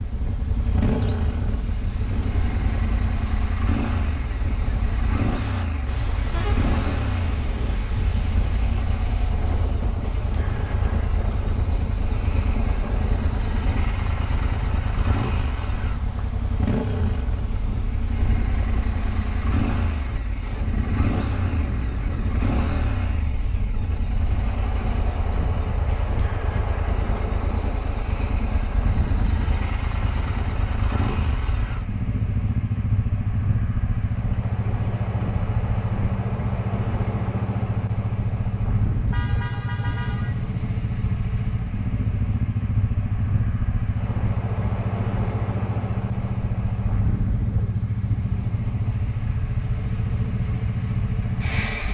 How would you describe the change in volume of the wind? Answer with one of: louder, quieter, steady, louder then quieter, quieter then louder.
steady.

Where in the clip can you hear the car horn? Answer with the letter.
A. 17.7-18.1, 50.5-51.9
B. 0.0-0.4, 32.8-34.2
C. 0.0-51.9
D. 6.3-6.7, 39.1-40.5
D.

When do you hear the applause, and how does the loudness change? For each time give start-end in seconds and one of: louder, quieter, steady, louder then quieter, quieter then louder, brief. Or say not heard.
not heard.